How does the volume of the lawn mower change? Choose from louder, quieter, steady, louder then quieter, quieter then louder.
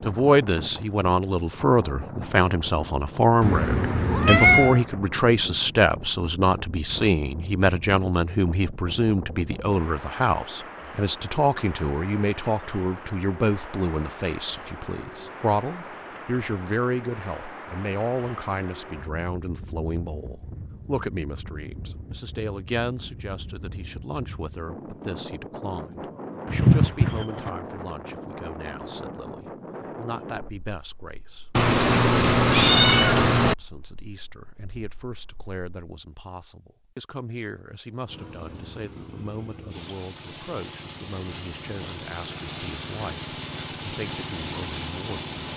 louder.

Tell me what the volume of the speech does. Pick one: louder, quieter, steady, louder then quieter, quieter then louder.
quieter.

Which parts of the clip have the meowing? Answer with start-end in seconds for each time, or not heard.
3.4-4.8, 26.4-27.5, 31.6-33.5.